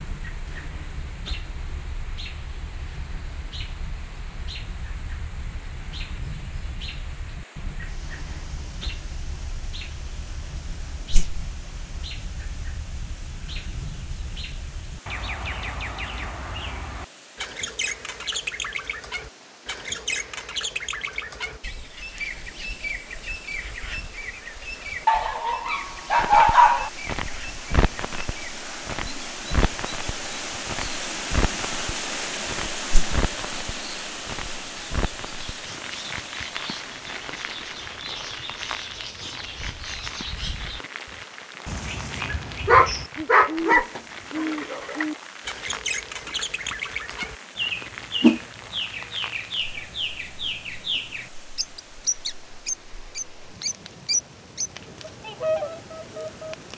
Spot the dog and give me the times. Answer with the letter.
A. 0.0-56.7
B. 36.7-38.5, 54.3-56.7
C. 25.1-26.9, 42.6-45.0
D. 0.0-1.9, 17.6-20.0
C.